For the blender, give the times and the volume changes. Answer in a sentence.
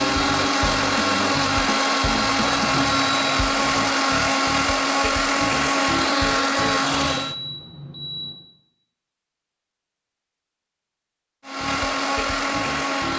You can hear the blender from 0.0 to 7.3 s, at a steady volume; and briefly from 11.4 to 13.1 s.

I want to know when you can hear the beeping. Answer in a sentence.
The beeping can be heard from 2.5 to 3.4 s and from 6.7 to 8.3 s.